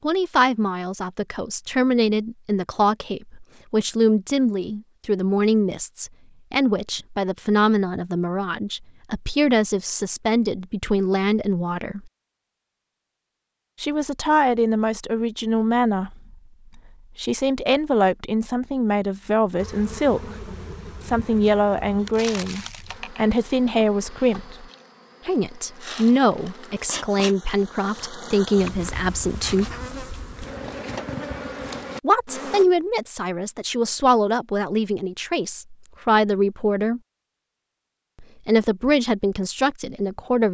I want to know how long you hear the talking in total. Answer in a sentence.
You can hear the talking for 34 seconds altogether.